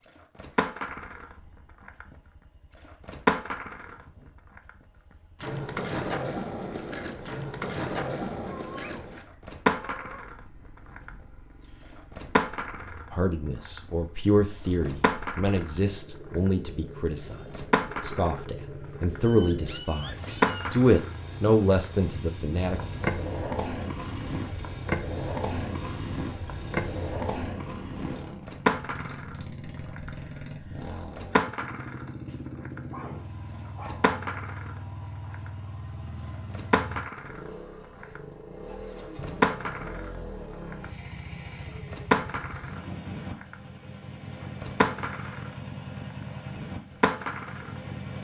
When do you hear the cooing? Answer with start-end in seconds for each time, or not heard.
not heard.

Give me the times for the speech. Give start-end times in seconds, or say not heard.
13.1-22.8.